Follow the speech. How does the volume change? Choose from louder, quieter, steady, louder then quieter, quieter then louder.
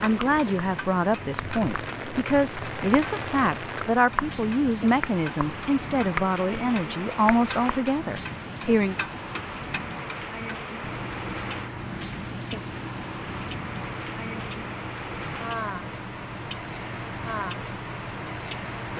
steady.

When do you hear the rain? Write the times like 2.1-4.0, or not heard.
0.0-18.9.